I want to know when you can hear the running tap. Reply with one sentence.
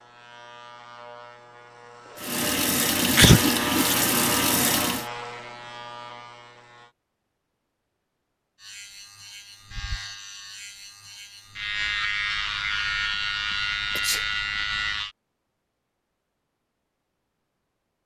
The running tap can be heard from 2.1 to 5.1 s.